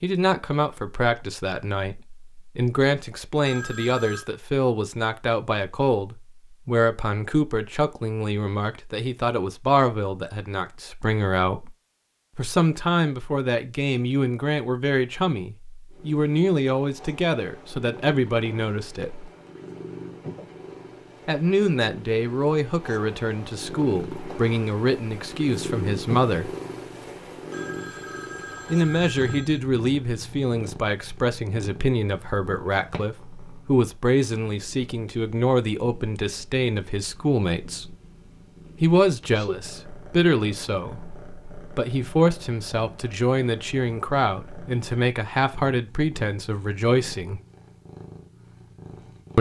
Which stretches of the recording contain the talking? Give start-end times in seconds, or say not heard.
0.0-11.7, 12.3-19.2, 21.2-26.5, 28.7-37.9, 38.8-47.4.